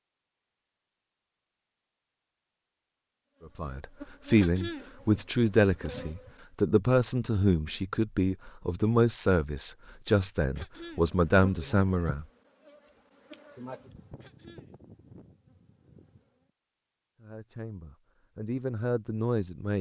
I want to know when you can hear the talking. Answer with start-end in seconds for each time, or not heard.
3.5-12.2, 17.2-19.7.